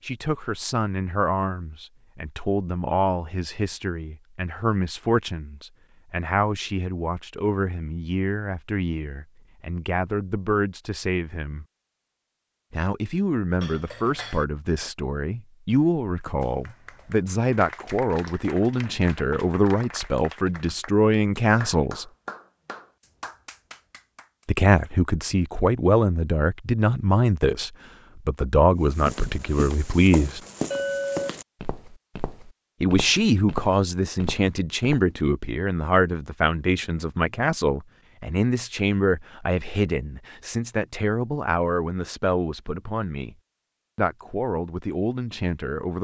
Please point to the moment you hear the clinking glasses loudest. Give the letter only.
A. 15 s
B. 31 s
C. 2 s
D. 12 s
B.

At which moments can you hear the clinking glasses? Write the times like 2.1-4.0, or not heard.
13.6-14.4, 30.7-31.4.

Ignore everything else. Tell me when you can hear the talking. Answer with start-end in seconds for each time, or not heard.
0.0-11.7, 12.7-22.1, 24.4-30.4, 32.8-43.4, 44.0-45.9.